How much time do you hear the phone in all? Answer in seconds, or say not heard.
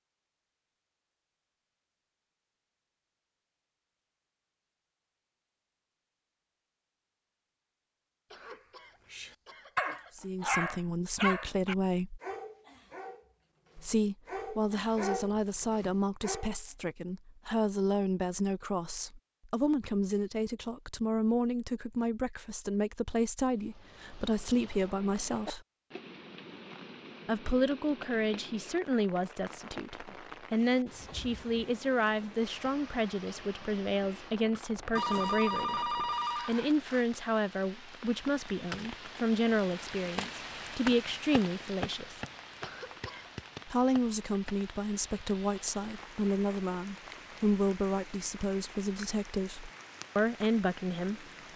2 s.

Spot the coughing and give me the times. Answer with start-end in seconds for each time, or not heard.
8.3-10.2, 42.6-43.4.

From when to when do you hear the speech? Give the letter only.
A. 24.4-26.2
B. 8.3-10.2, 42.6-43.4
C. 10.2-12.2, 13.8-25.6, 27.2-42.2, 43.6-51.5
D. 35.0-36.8
C.